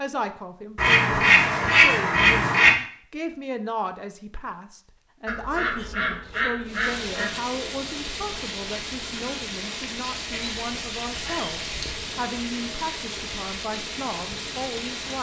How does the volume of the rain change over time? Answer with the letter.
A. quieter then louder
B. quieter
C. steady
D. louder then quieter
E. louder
C.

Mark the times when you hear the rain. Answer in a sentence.
You can hear the rain from 6.7 to 15.1 s.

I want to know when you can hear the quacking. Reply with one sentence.
The quacking can be heard from 0.8 to 2.7 s, from 5.2 to 7.3 s and from 10.3 to 12.0 s.